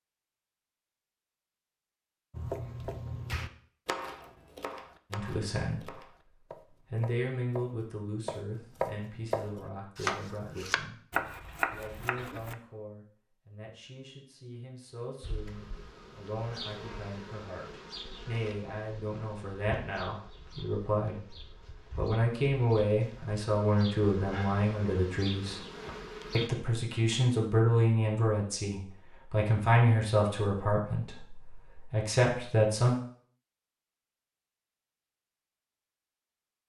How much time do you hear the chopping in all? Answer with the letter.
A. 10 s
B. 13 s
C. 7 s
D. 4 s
A.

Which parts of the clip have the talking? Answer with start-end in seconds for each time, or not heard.
5.1-6.1, 6.8-10.9, 11.7-25.6, 26.3-33.0.